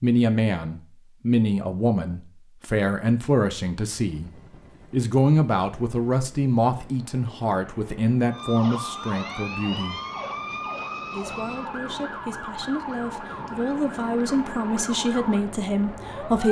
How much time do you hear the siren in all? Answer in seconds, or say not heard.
8 s.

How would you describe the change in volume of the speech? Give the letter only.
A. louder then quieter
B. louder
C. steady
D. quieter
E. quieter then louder
E.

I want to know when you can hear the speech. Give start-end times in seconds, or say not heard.
0.0-4.3, 4.9-10.0, 11.1-16.4.